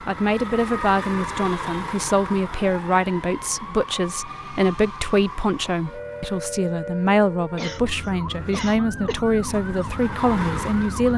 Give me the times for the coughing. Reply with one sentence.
You can hear the coughing from 7.5 to 9.2 s.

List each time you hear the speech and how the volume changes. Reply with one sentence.
You can hear the speech from 0.1 to 11.1 s, at a steady volume.